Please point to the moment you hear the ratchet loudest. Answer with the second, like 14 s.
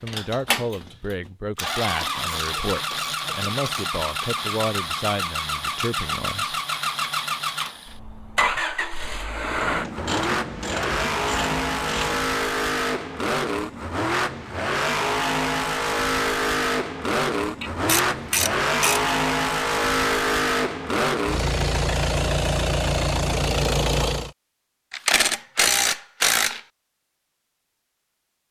26 s.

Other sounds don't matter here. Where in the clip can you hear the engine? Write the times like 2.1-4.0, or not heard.
0.0-24.3.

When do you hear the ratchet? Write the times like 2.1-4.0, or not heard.
1.6-3.9, 9.6-12.3, 17.6-19.1, 24.9-26.6.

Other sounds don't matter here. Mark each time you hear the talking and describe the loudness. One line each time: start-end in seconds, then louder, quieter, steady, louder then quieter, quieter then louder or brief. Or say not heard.
0.0-6.6 steady.